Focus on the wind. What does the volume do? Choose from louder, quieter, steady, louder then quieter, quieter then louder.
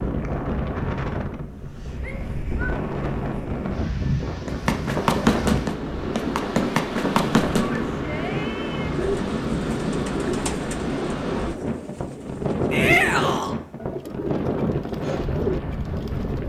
steady.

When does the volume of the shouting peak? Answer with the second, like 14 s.
13 s.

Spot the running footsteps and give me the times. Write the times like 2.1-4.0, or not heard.
4.5-7.8.